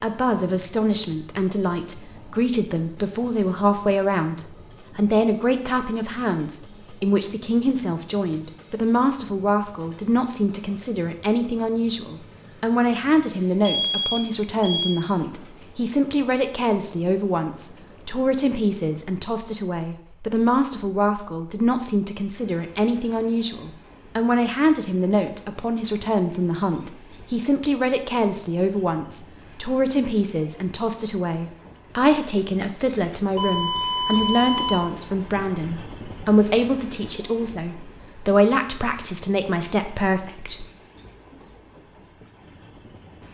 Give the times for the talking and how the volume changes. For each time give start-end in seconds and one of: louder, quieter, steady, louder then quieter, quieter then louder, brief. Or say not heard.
0.0-40.6 steady.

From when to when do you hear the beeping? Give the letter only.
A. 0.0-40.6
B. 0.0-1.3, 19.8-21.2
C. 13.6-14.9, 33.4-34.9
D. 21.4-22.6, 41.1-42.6
C.